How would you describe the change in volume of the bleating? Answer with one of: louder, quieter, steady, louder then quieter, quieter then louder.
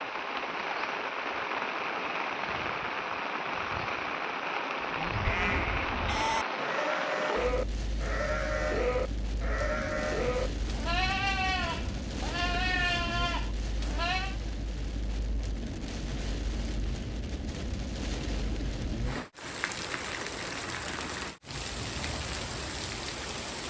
steady.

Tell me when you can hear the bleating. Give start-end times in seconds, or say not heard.
4.8-14.3.